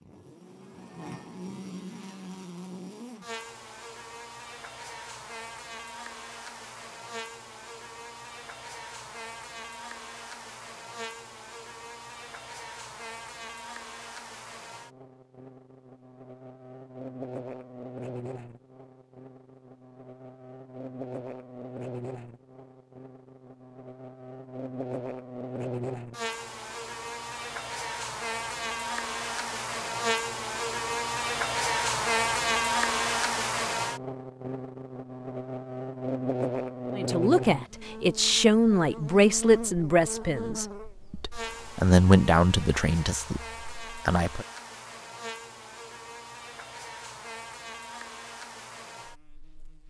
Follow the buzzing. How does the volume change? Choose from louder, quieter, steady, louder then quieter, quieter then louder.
louder then quieter.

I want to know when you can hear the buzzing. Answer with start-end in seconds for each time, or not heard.
0.0-49.8.